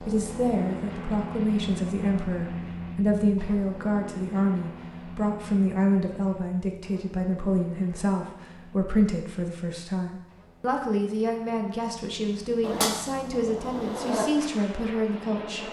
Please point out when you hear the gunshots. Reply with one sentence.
You can hear the gunshots from 12.6 to 14.2 s.